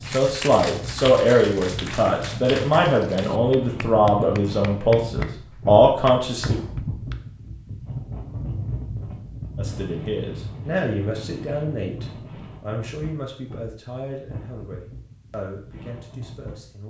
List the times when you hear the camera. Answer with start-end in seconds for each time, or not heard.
not heard.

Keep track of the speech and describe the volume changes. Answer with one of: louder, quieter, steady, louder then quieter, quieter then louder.
quieter.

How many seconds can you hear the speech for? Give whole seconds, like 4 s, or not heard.
14 s.